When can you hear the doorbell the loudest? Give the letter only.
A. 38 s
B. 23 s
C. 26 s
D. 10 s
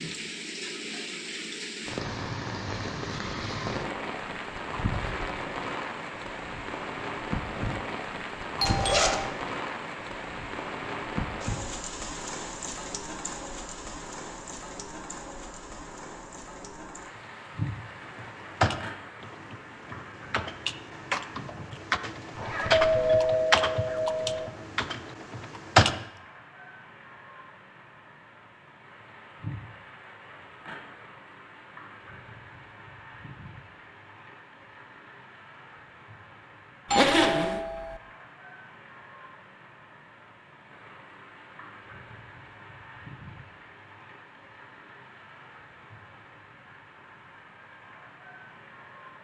B.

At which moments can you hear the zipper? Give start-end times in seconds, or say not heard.
8.7-9.2, 22.4-23.3, 36.9-37.6.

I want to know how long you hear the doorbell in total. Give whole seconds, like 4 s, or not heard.
3 s.